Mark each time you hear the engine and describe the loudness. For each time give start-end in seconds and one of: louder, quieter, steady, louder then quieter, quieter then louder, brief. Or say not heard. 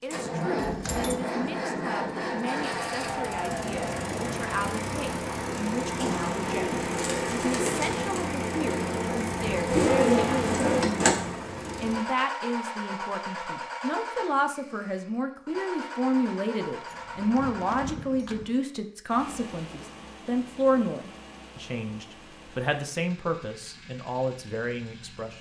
0.0-25.3 quieter.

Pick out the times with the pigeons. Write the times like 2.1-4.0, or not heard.
6.0-11.1.